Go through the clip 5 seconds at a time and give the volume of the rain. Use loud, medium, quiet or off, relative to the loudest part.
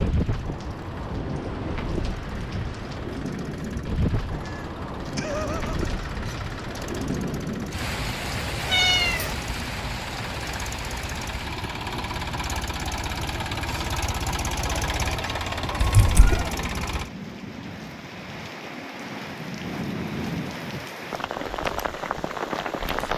loud, loud, medium, medium, loud.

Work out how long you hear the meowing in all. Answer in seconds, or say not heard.
3 s.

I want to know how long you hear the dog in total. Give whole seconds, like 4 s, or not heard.
not heard.